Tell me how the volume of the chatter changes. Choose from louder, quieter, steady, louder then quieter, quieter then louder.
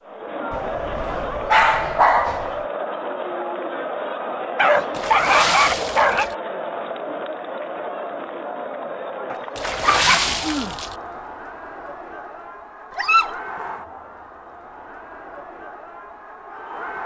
quieter.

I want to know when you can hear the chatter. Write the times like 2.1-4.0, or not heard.
0.1-17.0.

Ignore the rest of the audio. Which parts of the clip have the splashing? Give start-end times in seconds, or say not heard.
4.9-6.3, 9.6-10.9.